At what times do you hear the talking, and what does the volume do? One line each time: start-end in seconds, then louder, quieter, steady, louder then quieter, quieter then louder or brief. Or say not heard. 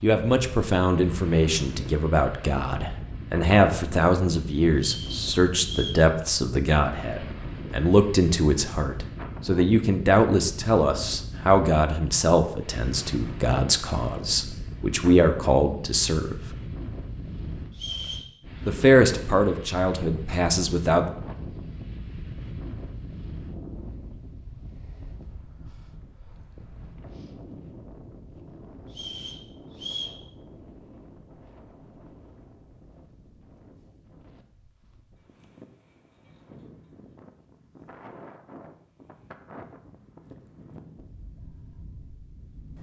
0.0-16.4 steady
18.6-21.1 brief.